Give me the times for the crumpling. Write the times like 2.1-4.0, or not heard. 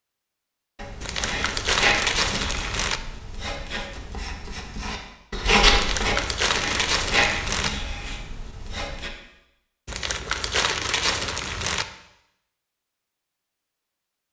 1.0-3.0, 5.7-7.7, 9.8-11.8.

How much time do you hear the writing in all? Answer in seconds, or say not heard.
8 s.